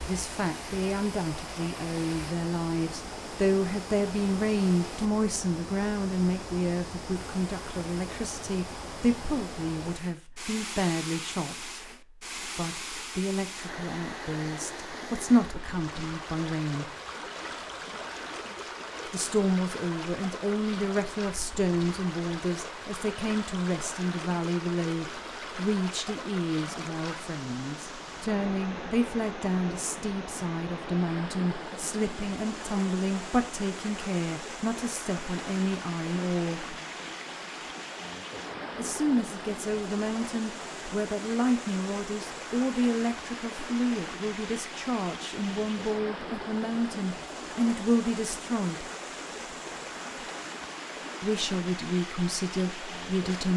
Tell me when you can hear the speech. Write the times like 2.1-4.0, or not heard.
0.0-11.8, 12.4-16.9, 19.1-36.8, 38.8-48.9, 51.2-53.5.